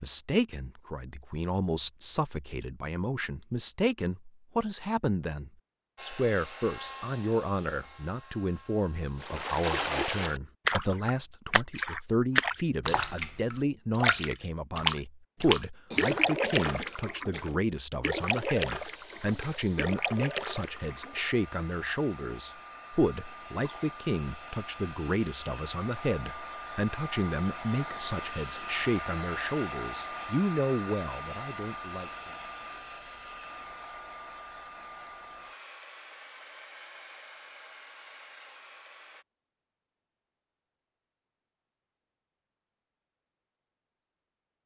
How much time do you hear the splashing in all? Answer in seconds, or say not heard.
12 s.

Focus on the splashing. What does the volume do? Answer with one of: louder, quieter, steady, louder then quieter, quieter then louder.
quieter.